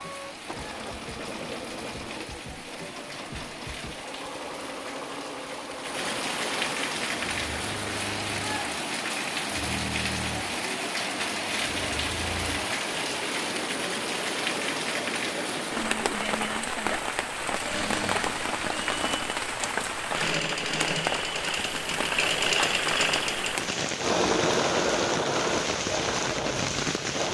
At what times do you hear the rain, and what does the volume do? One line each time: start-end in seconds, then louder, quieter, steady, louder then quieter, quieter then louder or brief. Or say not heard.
0.0-27.2 louder.